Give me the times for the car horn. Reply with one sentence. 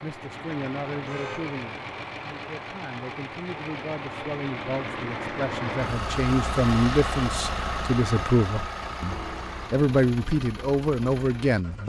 You can hear the car horn from 1.1 to 1.6 s and from 9.1 to 9.8 s.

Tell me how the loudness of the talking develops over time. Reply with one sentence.
The volume of the talking goes up.